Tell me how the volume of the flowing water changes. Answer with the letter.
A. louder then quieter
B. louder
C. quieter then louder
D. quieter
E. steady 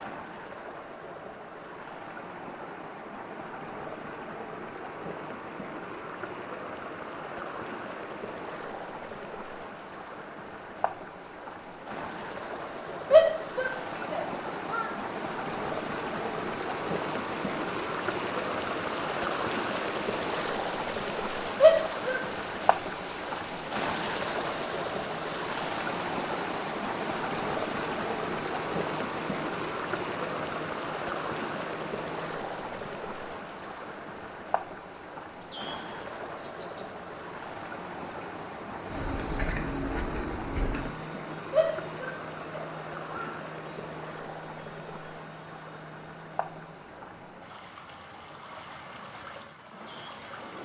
A.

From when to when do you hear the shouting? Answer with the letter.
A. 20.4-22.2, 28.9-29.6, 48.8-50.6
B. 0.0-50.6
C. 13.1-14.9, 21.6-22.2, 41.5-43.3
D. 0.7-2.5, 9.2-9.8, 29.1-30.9
C.